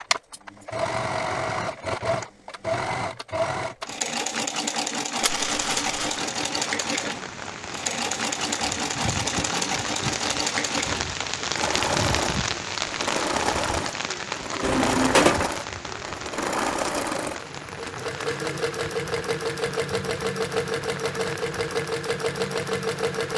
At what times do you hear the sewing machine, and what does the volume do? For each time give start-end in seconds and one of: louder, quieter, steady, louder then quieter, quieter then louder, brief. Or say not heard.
0.0-23.3 steady.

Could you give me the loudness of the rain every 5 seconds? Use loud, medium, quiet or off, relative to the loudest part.
off, medium, loud, medium, medium.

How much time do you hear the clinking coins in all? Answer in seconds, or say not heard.
2 s.